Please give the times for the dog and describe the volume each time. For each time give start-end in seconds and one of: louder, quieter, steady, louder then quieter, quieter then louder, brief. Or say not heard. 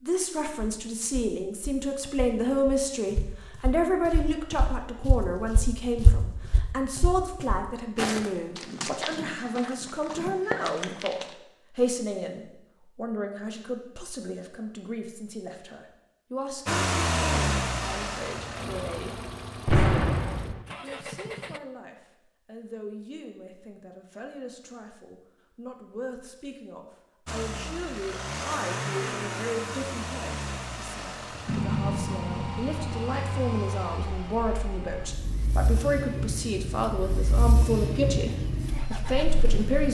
not heard.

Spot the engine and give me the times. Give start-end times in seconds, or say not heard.
16.6-21.6, 27.2-39.8.